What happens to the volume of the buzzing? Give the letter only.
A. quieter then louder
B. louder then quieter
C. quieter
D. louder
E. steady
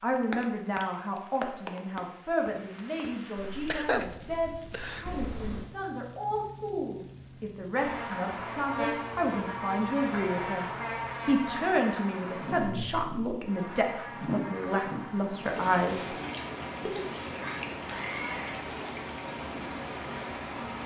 C.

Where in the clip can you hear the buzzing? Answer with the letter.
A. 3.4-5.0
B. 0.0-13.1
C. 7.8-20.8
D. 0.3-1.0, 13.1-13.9
C.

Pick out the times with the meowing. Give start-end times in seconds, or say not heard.
5.0-5.7, 17.8-18.6.